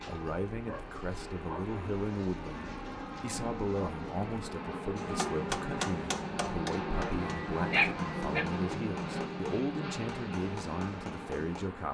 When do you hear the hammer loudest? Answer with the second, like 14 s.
6 s.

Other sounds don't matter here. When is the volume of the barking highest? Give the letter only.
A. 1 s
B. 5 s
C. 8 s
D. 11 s
C.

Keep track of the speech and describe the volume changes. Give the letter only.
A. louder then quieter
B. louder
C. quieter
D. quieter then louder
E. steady
E.